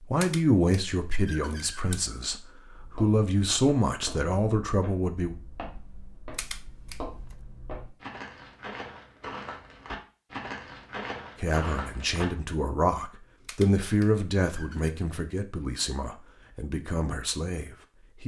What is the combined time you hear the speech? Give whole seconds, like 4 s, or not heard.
12 s.